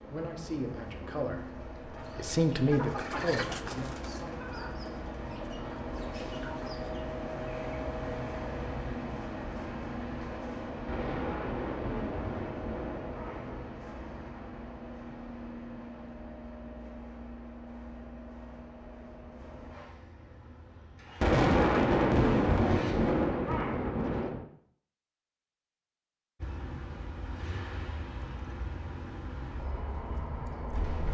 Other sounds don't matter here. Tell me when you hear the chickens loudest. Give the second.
3 s.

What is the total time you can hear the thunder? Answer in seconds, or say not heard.
6 s.